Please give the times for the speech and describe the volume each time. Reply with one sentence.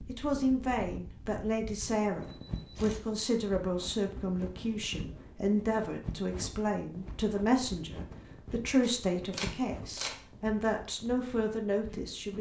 The speech can be heard from 0.1 to 12.3 s, at a steady volume.